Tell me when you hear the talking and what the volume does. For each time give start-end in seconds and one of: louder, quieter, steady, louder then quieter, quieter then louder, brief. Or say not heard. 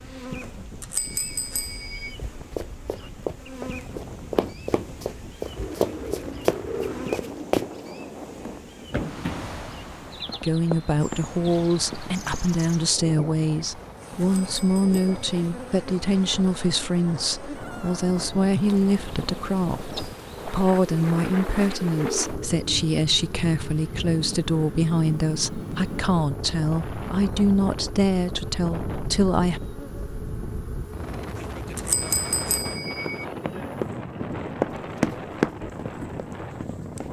10.4-29.6 steady.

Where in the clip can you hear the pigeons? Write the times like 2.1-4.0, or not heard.
5.5-7.5, 20.9-22.9.